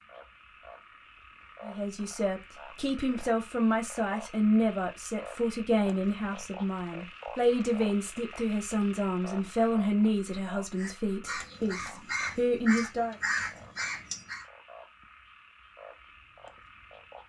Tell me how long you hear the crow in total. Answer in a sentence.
The crow can be heard for 4 seconds in total.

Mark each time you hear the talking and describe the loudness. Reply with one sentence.
You can hear the talking from 1.6 to 13.2 s, at a steady volume.